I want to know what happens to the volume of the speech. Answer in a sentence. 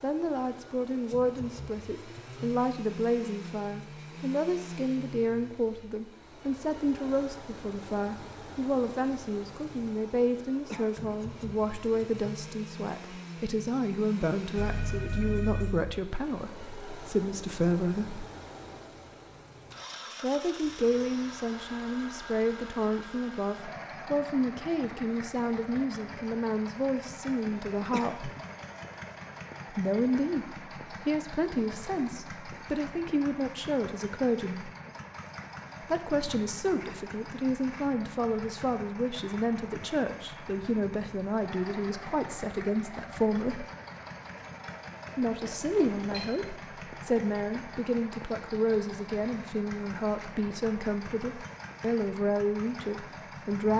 The volume of the speech stays about the same.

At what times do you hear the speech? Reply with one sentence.
You can hear the speech from 0.0 to 18.2 s, from 20.2 to 28.3 s, from 29.7 to 34.7 s, from 35.8 to 43.6 s and from 45.1 to 53.7 s.